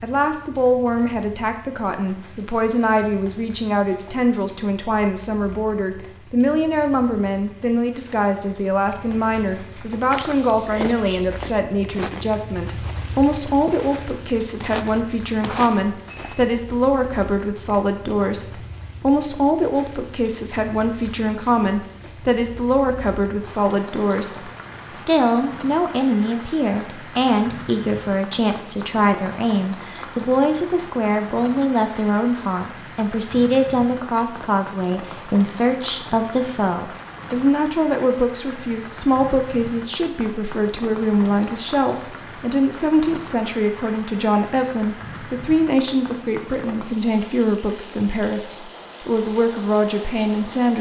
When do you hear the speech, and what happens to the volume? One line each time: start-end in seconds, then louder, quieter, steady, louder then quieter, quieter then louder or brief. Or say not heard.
0.0-50.7 steady.